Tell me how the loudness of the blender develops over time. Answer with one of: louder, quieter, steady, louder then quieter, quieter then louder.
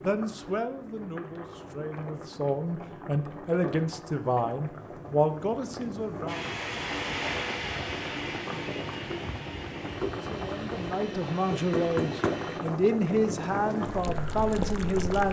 quieter.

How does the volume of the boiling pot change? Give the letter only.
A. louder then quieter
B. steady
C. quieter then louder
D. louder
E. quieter
D.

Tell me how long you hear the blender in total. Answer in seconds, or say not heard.
6 s.